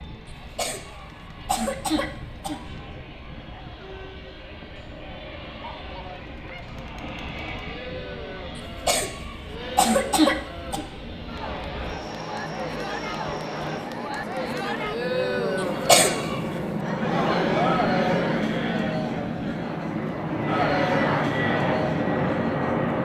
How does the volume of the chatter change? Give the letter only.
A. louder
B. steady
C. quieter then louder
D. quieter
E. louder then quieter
A.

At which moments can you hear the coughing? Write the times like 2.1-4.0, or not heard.
0.6-2.6, 8.6-10.8, 15.6-16.4.